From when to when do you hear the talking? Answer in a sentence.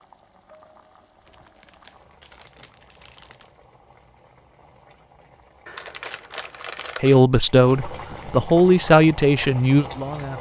The talking can be heard from 7.0 to 10.3 s.